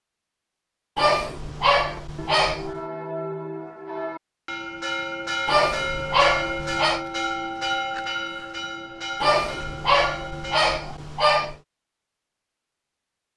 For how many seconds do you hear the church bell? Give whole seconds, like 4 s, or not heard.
9 s.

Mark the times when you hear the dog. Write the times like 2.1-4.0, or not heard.
0.9-2.8, 5.5-7.0, 9.2-11.6.